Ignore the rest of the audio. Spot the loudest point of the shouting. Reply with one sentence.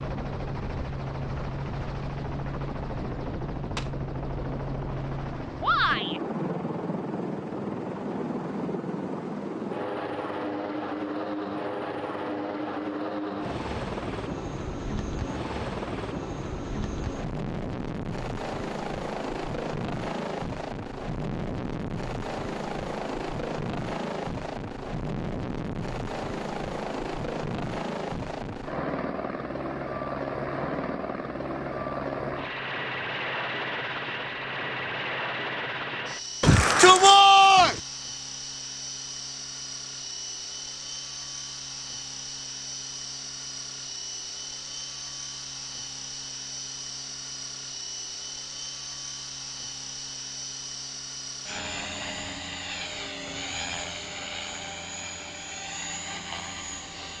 The volume of the shouting peaks at 37 seconds.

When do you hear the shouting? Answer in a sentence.
The shouting can be heard from 5.6 to 6.2 s and from 36.4 to 37.8 s.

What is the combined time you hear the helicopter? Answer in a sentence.
The helicopter can be heard for 57 seconds in total.